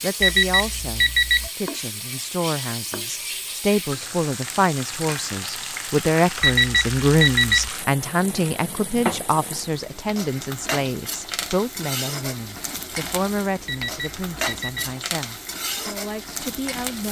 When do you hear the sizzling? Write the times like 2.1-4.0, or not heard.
0.0-17.0.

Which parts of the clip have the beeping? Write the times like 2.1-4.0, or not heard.
0.2-1.5, 6.4-7.7, 13.7-14.9.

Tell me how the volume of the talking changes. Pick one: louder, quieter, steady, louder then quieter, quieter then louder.
louder then quieter.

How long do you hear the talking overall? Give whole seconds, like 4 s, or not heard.
17 s.